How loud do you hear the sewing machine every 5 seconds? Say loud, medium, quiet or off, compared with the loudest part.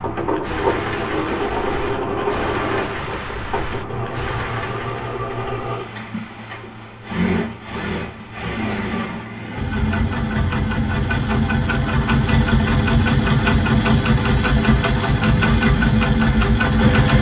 medium, medium, loud, loud.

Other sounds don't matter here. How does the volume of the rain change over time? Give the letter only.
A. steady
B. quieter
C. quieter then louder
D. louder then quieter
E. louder
B.